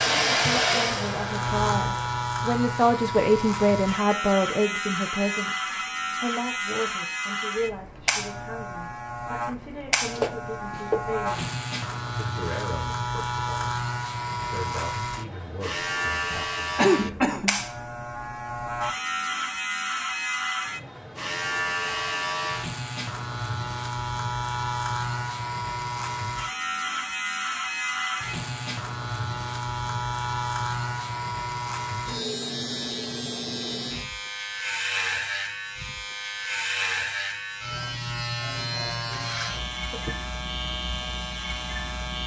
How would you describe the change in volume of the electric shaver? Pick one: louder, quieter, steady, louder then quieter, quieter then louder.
steady.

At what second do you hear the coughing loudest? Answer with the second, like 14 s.
17 s.